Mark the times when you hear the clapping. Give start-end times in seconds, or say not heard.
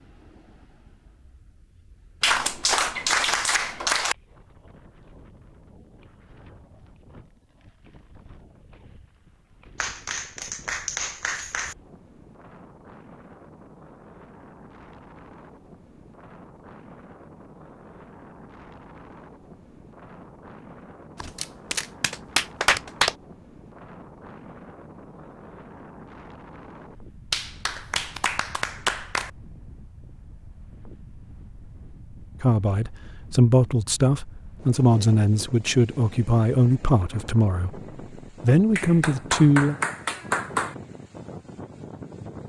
2.2-4.2, 9.8-11.8, 21.1-23.1, 27.3-29.3, 38.8-40.8.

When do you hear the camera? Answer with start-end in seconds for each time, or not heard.
21.4-21.9.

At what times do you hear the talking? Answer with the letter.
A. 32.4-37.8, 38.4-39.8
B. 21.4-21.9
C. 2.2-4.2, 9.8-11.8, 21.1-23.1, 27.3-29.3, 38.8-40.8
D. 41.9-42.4
A.